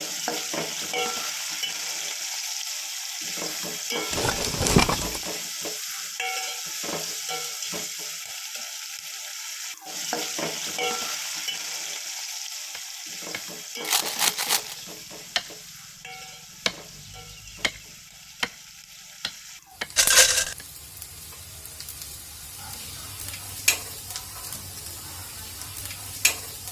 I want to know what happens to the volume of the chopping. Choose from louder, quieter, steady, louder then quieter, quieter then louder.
quieter then louder.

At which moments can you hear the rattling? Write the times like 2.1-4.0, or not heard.
4.1-5.2, 13.8-14.8, 19.9-20.6.